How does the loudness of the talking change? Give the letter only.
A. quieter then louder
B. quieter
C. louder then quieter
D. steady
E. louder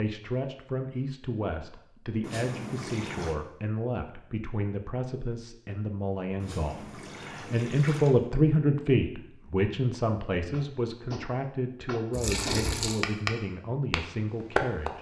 C.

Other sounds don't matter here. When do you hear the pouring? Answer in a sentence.
The pouring can be heard from 2.2 to 3.4 s, from 6.4 to 8.2 s and from 12.1 to 13.0 s.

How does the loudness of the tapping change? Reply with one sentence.
The volume of the tapping goes up, then down.